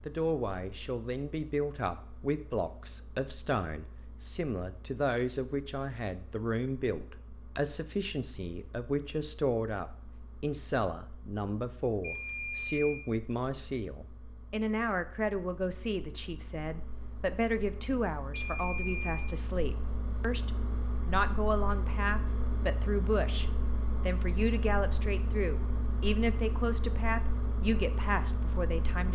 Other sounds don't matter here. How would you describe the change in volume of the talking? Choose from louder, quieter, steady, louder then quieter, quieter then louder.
steady.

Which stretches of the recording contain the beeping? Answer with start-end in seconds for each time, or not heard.
12.0-13.0, 18.3-19.3.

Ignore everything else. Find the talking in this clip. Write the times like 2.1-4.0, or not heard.
0.1-29.1.